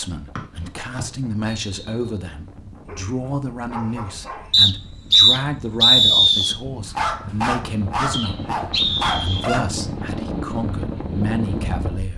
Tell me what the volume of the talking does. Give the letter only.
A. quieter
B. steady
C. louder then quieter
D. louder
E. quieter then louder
B.